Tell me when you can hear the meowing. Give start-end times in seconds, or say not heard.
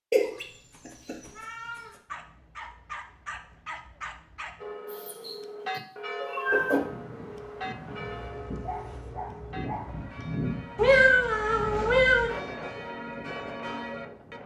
0.1-1.8, 4.9-6.8, 10.8-12.3.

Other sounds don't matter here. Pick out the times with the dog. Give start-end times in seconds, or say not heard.
2.0-4.7, 8.0-10.1.